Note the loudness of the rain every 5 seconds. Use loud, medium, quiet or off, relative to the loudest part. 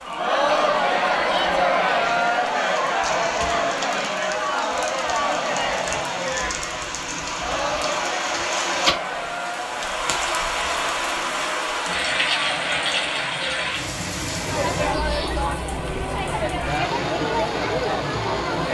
medium, loud, loud, medium.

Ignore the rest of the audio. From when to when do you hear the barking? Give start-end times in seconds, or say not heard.
not heard.